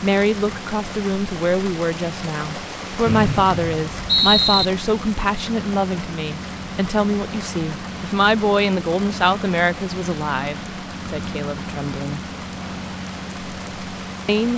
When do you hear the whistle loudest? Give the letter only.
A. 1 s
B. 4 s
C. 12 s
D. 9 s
B.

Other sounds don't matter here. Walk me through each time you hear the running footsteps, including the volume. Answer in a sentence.
The running footsteps can't be heard in this clip.